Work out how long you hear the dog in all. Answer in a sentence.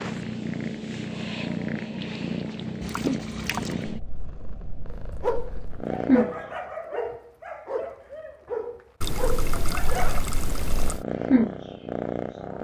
The dog can be heard for 5 seconds in total.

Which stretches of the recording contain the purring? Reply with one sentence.
You can hear the purring from 0.0 to 6.5 s and from 10.4 to 12.6 s.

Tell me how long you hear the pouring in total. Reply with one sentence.
The pouring can be heard for 3 seconds in total.